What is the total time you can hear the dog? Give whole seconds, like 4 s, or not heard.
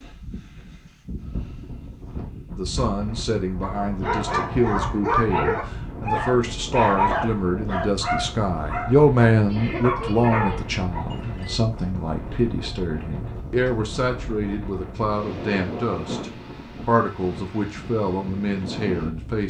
8 s.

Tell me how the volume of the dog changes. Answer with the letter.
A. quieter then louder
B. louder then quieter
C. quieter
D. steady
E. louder
A.